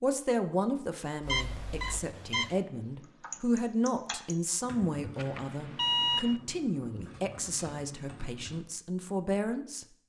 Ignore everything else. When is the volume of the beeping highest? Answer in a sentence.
The loudest moment of the beeping is at 6 seconds.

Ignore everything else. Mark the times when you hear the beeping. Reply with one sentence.
The beeping can be heard from 1.2 to 2.6 s and from 5.2 to 6.3 s.